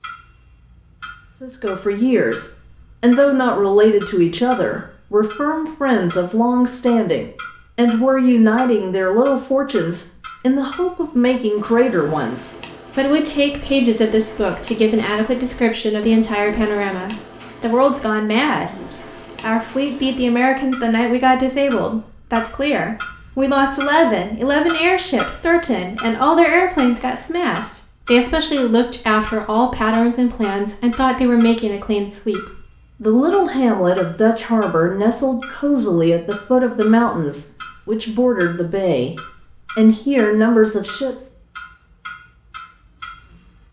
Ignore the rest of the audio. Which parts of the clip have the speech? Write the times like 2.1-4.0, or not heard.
1.4-18.8, 19.4-41.2.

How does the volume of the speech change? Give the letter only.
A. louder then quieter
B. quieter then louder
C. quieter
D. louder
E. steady
E.